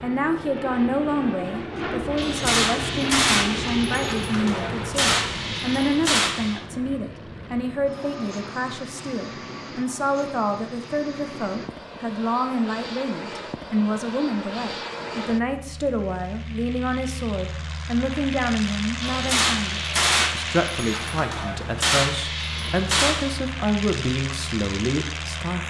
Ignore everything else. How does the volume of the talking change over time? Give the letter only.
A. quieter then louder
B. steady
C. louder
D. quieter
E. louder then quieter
B.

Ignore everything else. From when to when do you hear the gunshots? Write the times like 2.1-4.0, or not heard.
2.1-6.6, 19.0-23.4.